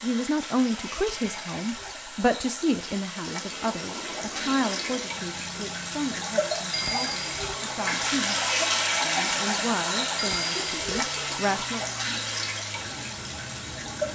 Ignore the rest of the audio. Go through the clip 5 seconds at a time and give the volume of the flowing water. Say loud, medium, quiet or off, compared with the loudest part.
medium, loud, loud.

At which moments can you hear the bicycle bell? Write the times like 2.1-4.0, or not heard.
1.1-1.9, 6.7-7.5, 10.2-11.0.